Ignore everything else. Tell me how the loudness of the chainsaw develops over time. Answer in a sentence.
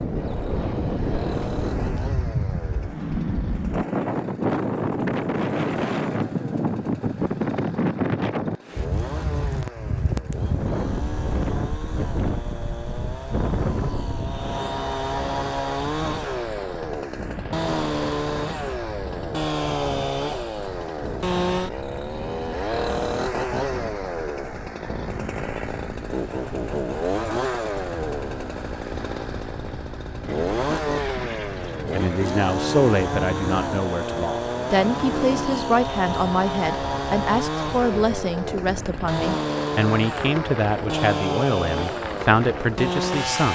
The loudness of the chainsaw goes up.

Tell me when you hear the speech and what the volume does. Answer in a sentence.
You can hear the speech from 31.9 to 43.5 s, at a steady volume.